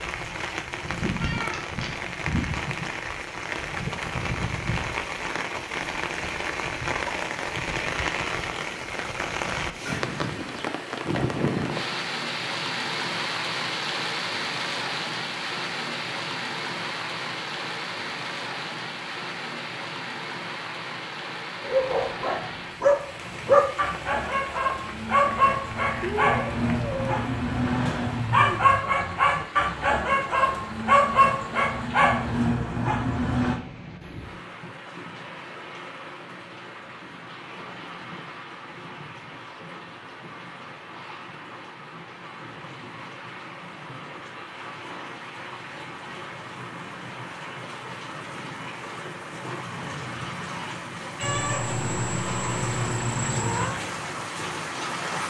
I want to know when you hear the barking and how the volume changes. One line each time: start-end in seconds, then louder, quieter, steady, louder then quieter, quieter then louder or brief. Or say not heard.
21.6-33.6 steady.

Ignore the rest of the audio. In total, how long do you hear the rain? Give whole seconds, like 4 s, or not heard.
55 s.